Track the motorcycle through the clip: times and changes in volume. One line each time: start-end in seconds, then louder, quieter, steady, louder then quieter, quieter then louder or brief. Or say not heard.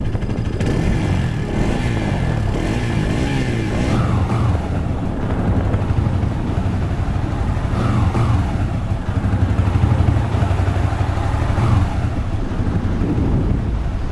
0.0-14.0 steady.